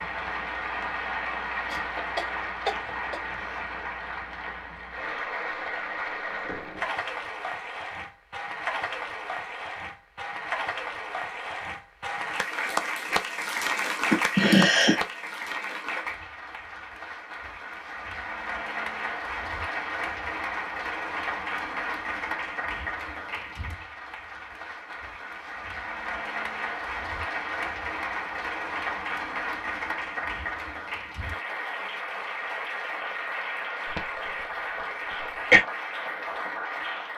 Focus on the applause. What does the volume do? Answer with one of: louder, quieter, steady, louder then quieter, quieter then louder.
steady.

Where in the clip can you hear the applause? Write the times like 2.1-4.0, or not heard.
0.0-37.1.